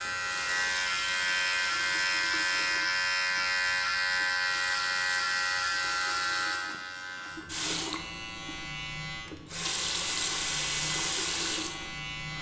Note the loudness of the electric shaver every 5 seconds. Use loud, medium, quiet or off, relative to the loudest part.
loud, medium, medium.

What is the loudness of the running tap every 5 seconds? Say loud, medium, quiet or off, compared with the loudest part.
medium, medium, loud.